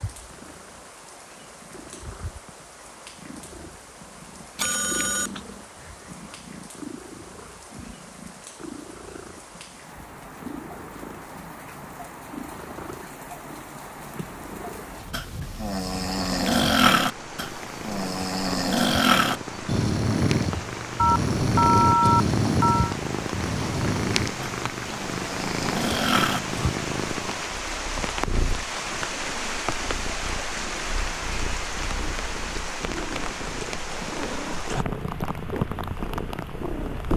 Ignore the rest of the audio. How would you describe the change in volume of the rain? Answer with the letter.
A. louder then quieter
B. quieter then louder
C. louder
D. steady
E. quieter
C.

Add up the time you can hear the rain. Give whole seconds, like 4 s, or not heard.
37 s.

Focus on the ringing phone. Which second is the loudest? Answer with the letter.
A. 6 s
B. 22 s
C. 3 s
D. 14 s
B.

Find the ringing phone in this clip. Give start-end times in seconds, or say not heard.
4.5-5.4, 20.9-22.9.